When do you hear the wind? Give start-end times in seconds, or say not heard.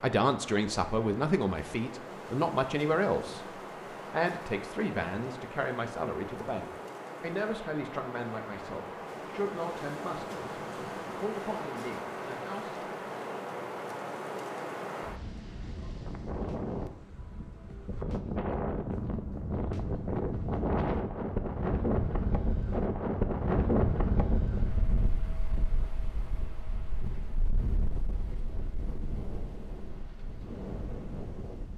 0.2-31.7.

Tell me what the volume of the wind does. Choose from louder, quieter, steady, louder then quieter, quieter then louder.
louder then quieter.